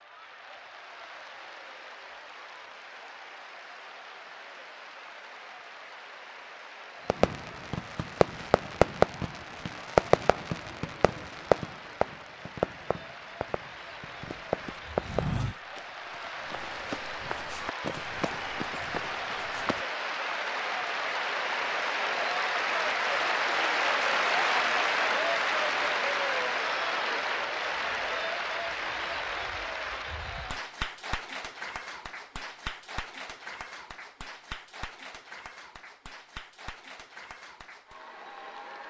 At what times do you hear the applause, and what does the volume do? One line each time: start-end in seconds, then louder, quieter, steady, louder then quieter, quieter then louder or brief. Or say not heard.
0.0-38.8 louder then quieter.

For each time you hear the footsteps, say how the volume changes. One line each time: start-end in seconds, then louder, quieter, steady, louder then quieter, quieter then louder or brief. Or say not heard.
14.2-19.9 quieter then louder.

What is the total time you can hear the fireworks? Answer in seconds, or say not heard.
8 s.